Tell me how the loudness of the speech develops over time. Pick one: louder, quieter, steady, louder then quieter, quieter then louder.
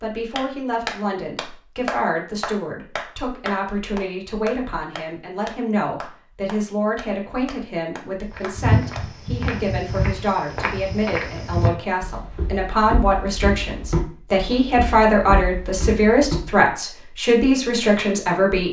louder.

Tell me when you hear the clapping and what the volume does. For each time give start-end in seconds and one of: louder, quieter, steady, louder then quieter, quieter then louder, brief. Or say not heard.
0.3-9.1 quieter.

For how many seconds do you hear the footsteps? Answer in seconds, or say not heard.
8 s.